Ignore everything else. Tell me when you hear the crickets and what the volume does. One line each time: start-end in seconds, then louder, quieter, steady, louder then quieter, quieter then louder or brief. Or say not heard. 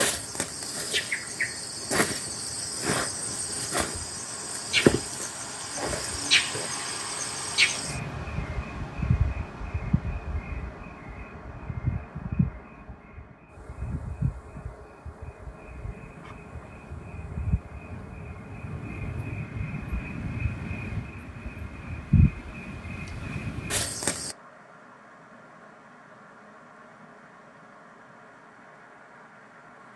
0.0-24.4 quieter then louder.